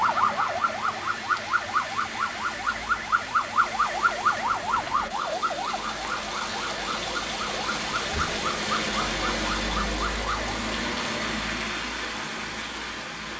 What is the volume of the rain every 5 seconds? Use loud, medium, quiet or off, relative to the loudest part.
medium, loud, loud.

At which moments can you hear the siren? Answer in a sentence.
You can hear the siren from 0.0 to 10.6 s.